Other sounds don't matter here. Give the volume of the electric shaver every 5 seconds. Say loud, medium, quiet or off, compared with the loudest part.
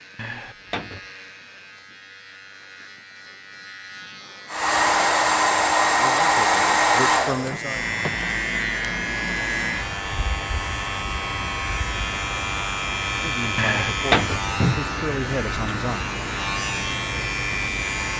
quiet, loud, loud, loud.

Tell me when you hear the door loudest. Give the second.
14 s.